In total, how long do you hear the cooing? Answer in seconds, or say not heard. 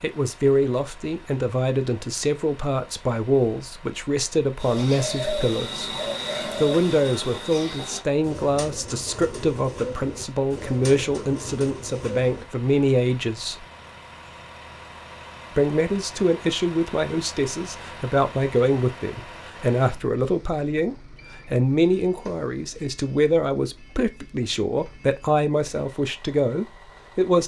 8 s.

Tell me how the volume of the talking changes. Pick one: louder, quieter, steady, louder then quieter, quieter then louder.
steady.